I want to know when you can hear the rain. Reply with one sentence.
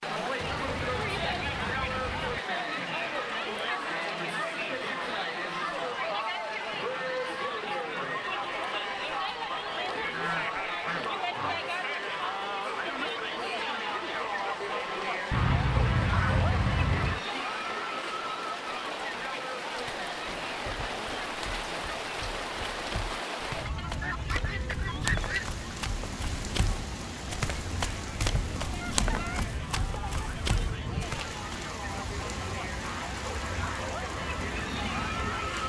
The rain can be heard from 0.0 to 35.6 s.